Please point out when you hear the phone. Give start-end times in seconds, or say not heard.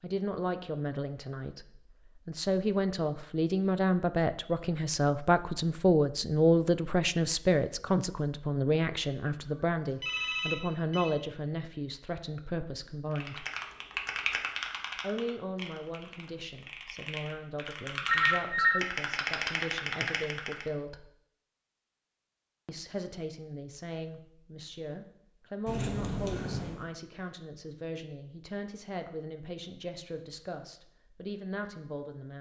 9.4-11.2, 18.1-18.9.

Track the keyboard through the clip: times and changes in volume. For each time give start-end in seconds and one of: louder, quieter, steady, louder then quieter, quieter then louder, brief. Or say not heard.
13.2-20.6 quieter then louder.